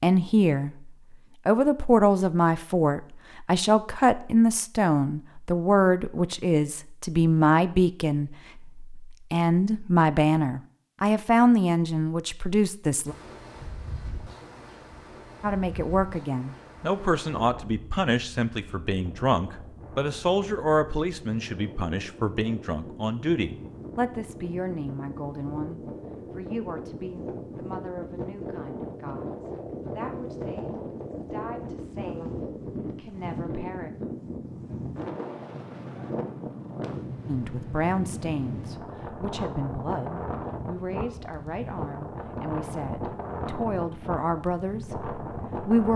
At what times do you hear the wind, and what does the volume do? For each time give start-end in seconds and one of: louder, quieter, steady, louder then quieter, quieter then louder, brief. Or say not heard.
13.1-45.9 louder.